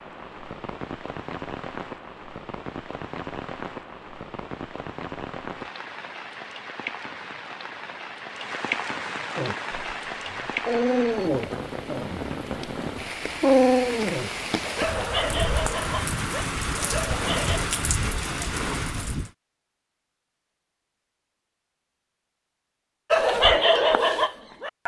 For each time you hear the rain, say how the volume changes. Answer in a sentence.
You can hear the rain from 0.0 to 19.3 s, getting louder.